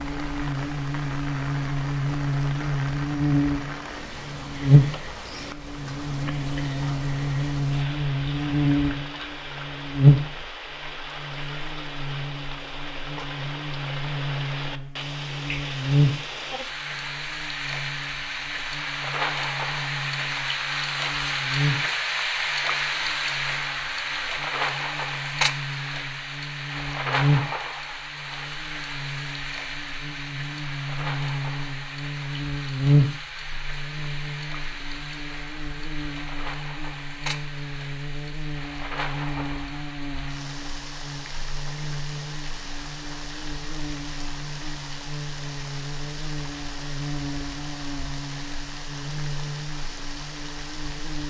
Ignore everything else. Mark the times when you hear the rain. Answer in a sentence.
You can hear the rain from 0.0 to 51.2 s.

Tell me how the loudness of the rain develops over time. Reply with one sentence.
The volume of the rain goes up, then down.